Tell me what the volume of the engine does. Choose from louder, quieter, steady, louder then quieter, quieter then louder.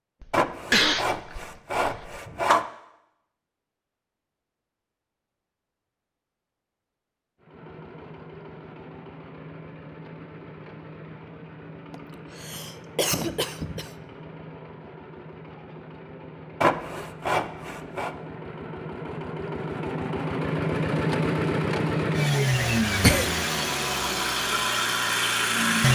louder.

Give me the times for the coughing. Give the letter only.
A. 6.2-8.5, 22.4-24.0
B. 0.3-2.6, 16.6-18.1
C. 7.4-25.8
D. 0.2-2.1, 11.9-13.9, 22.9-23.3
D.